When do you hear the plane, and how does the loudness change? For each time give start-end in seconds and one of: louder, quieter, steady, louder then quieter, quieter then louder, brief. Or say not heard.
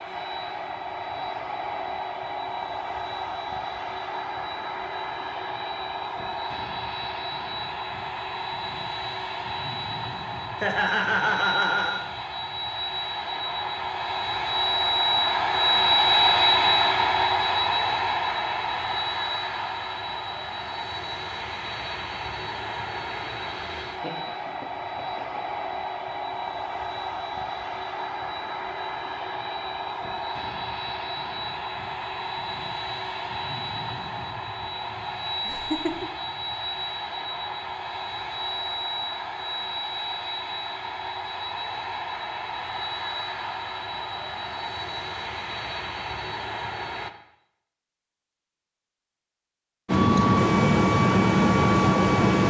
0.0-47.1 louder then quieter
49.9-52.4 brief.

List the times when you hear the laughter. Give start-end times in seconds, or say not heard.
10.6-12.0, 23.9-25.4, 35.5-36.0.